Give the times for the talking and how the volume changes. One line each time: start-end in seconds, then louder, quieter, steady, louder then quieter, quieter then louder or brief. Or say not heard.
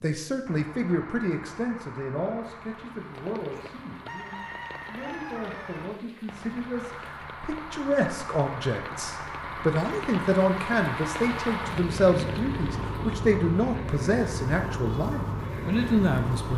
0.0-16.5 quieter then louder.